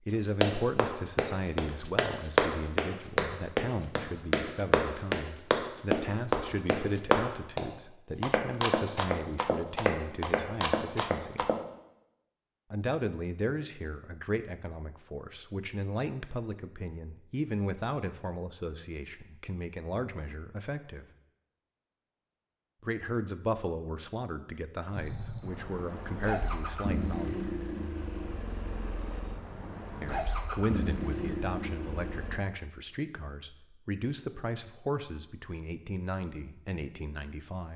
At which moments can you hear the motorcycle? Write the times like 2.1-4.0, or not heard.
24.9-32.4.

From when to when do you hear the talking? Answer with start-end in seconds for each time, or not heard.
0.1-11.5, 12.7-21.1, 22.8-27.5, 30.0-37.7.